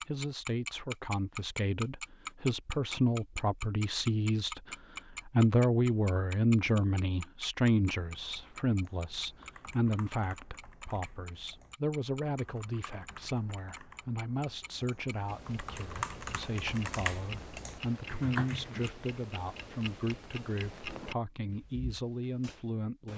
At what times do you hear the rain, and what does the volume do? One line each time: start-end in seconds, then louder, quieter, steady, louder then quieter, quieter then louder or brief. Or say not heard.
not heard.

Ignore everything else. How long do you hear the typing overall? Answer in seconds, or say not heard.
11 s.